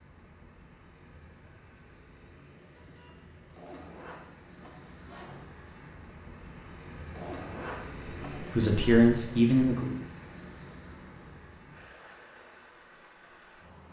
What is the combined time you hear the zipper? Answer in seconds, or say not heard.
3 s.